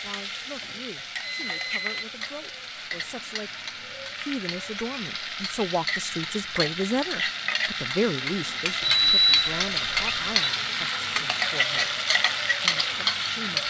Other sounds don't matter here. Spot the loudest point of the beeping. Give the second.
9 s.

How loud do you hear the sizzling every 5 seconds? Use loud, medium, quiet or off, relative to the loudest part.
medium, loud, loud.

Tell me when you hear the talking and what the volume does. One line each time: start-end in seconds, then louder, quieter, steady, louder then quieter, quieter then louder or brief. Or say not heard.
0.0-11.9 louder then quieter
12.6-13.6 brief.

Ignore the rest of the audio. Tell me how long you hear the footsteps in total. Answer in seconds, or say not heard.
not heard.